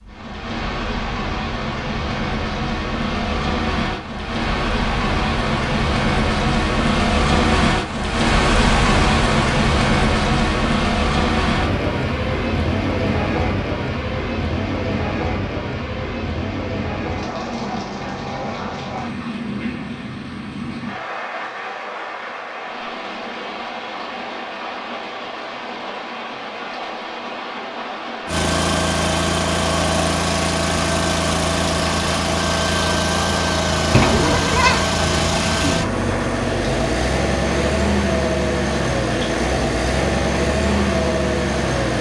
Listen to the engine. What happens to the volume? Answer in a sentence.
The volume of the engine stays about the same.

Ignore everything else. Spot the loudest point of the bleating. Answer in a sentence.
The volume of the bleating peaks at 34 seconds.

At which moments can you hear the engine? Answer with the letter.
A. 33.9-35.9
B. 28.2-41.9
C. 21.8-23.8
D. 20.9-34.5
B.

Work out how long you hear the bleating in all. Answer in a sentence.
You can hear the bleating for 2 seconds altogether.